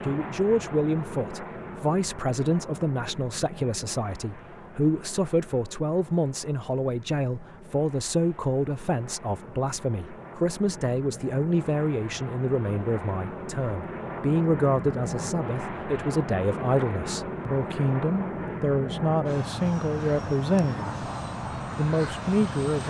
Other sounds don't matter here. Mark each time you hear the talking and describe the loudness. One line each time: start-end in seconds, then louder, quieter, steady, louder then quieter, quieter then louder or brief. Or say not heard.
0.0-20.9 steady
21.8-22.8 brief.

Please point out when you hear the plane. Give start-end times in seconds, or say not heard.
0.0-22.8.